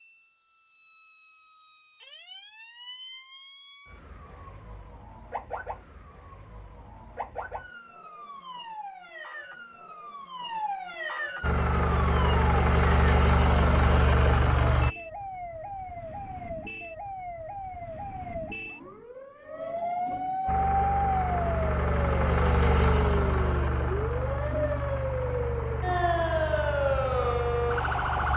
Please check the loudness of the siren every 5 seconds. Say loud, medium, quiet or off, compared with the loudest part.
quiet, quiet, medium, medium, loud, loud.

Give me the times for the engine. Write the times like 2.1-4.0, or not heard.
11.4-14.9, 20.4-28.3.